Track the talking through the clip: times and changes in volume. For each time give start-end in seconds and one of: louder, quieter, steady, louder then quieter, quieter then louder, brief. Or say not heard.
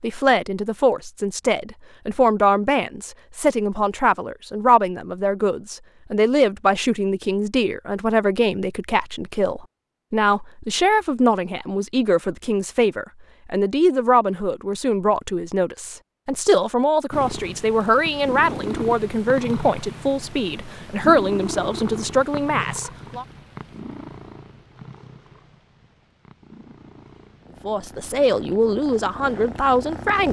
0.0-23.2 steady
27.6-30.2 brief.